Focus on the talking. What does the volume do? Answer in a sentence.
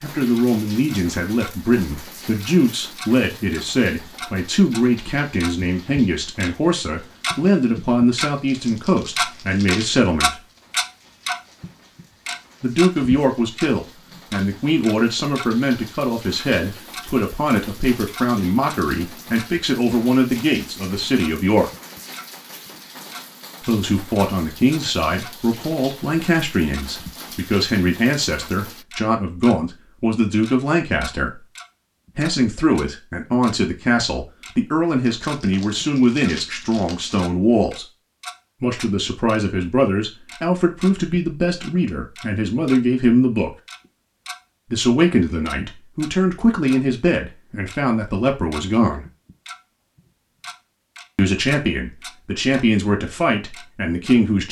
The volume of the talking stays about the same.